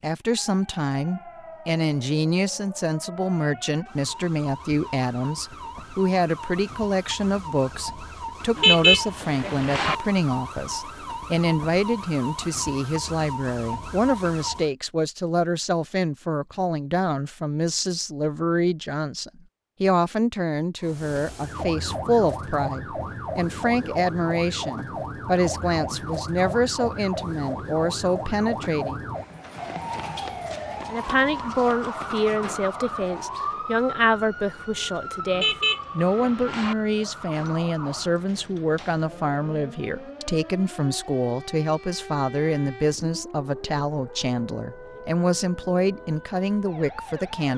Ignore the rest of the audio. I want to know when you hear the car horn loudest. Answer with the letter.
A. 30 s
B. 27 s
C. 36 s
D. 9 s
D.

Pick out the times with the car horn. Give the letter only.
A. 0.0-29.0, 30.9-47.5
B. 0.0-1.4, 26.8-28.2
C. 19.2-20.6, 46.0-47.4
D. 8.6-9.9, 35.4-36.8
D.